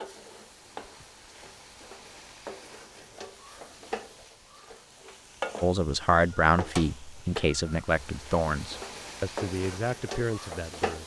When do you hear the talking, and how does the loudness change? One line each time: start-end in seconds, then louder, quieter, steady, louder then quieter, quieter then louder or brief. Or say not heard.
5.6-11.0 quieter.